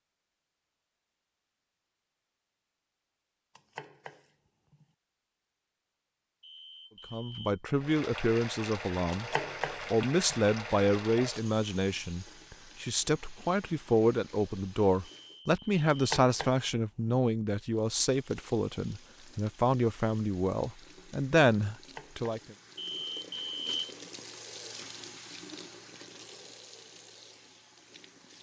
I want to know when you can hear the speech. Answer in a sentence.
The speech can be heard from 7.1 to 9.3 s and from 9.9 to 22.6 s.